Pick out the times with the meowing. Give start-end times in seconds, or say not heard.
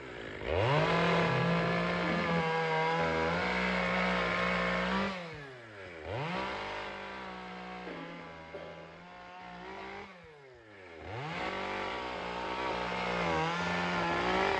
not heard.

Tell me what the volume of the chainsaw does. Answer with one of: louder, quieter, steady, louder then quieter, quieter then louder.
quieter then louder.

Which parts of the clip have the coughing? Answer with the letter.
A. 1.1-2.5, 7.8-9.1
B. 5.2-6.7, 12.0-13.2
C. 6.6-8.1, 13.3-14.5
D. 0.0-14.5
A.